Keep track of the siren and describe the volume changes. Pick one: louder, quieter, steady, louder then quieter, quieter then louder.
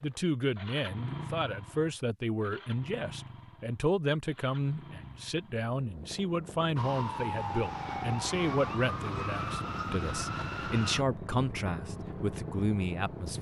steady.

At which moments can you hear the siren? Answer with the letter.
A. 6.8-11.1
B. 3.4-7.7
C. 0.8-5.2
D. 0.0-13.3
A.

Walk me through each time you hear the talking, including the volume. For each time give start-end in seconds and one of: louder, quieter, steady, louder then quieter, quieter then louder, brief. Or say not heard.
0.0-13.3 steady.